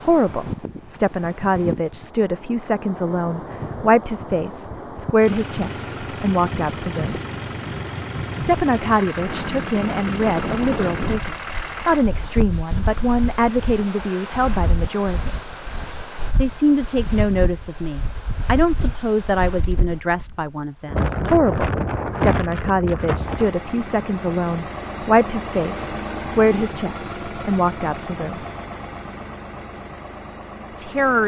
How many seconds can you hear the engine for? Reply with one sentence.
You can hear the engine for 15 seconds altogether.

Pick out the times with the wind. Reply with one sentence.
The wind can be heard from 0.0 to 23.5 s.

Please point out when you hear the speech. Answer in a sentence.
You can hear the speech from 0.0 to 7.2 s, from 8.4 to 15.4 s, from 16.4 to 28.4 s and from 30.8 to 31.2 s.